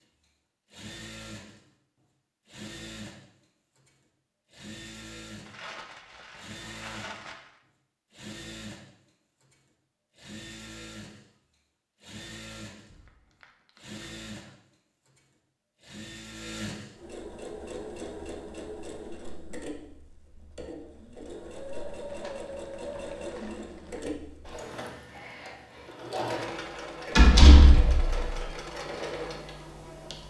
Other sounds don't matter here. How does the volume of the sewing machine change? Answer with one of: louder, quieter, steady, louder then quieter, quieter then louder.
louder.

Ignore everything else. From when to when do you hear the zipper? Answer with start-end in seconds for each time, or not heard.
not heard.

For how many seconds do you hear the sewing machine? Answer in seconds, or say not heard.
30 s.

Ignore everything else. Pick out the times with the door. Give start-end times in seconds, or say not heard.
27.1-28.3.